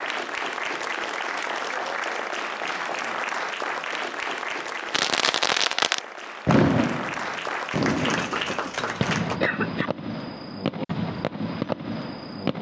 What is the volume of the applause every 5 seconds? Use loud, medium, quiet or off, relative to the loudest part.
loud, loud, off.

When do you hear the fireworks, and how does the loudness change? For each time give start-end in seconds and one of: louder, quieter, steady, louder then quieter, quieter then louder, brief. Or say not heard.
4.9-12.5 quieter.